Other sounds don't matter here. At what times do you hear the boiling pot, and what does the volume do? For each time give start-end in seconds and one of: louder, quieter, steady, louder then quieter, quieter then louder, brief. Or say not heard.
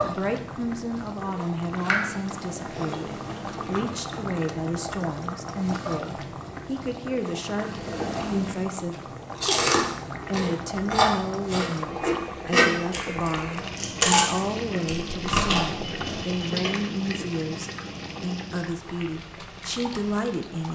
0.0-20.6 steady.